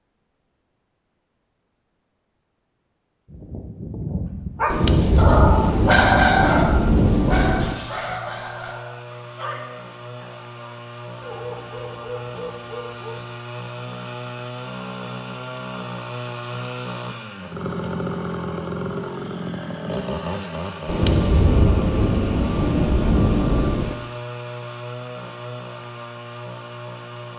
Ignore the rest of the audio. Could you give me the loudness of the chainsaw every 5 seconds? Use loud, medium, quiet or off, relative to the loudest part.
off, medium, medium, loud, loud, medium.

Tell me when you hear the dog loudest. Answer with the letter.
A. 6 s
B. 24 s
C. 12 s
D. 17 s
A.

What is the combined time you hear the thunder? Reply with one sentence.
You can hear the thunder for 6 seconds altogether.